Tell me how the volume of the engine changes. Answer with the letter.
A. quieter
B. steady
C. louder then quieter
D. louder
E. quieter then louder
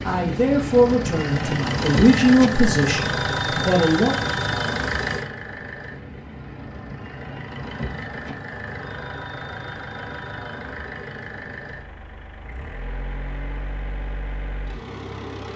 A.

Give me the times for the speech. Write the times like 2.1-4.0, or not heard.
0.0-4.2.